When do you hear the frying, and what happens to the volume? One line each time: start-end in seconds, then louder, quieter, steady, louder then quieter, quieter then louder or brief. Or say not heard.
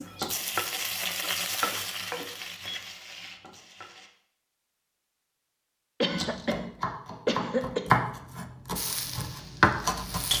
0.0-4.1 quieter
8.8-10.3 brief.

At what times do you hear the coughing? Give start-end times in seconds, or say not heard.
1.6-2.4, 6.0-8.0.